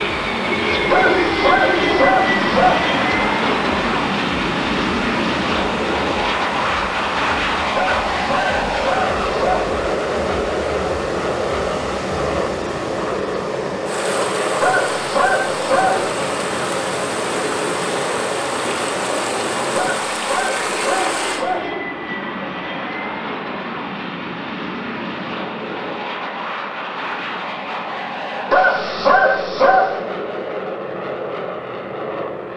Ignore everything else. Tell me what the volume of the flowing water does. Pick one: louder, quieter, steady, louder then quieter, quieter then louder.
louder.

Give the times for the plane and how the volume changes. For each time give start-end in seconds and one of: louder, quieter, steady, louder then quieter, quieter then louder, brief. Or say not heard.
0.0-32.5 quieter.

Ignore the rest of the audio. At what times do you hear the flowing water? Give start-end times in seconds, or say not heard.
0.1-21.4.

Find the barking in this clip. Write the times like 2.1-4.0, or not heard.
0.9-2.9, 7.8-9.7, 14.6-16.1, 19.8-21.7, 28.5-29.9.